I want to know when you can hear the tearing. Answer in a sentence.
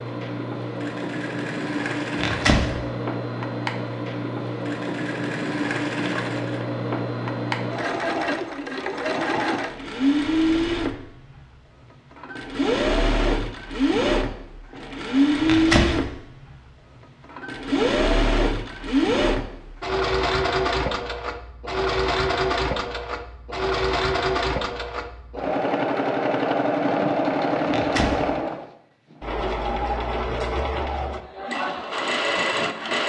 You can hear the tearing from 2.1 to 2.6 s, from 15.4 to 15.9 s and from 27.7 to 28.1 s.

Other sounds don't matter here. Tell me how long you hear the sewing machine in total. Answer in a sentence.
You can hear the sewing machine for 33 seconds altogether.